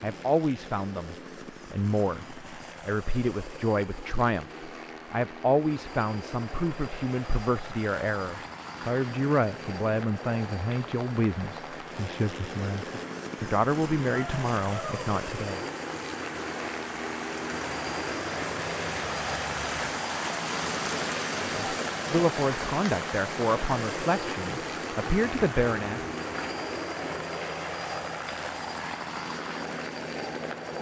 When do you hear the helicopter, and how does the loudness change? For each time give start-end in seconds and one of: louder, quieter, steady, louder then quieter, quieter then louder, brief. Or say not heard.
0.0-30.7 louder.